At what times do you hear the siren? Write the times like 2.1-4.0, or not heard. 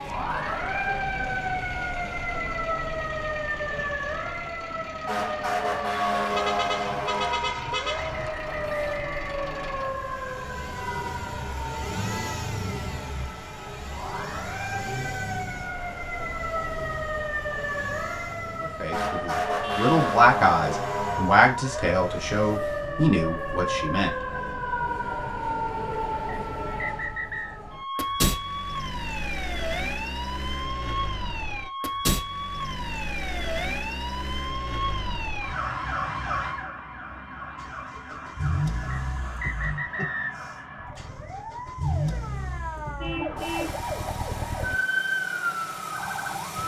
0.0-46.6.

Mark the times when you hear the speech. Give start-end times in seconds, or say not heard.
18.6-24.1.